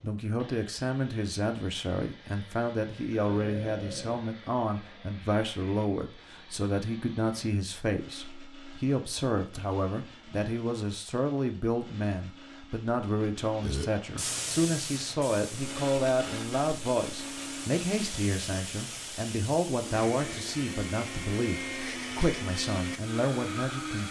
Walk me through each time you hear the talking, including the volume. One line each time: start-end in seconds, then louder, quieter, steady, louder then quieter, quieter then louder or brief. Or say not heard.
0.0-24.0 steady.